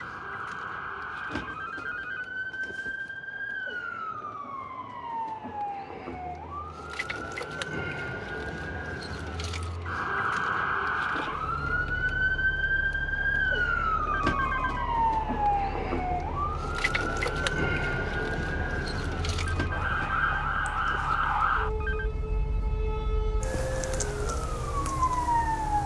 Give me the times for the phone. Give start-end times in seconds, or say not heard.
1.1-3.1, 14.1-14.8, 19.4-22.1.